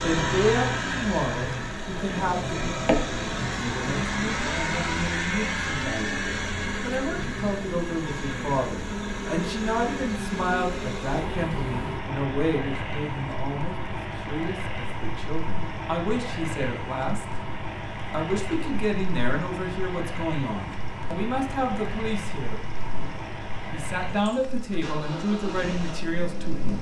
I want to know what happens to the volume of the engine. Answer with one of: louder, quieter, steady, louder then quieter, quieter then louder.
quieter.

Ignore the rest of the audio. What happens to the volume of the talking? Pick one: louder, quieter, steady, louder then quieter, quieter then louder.
steady.